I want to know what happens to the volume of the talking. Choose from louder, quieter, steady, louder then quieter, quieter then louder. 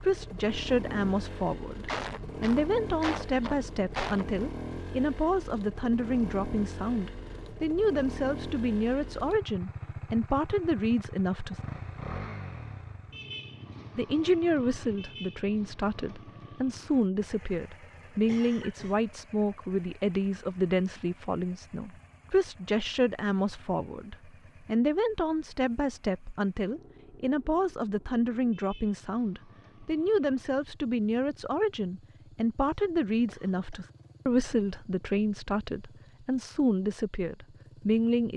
steady.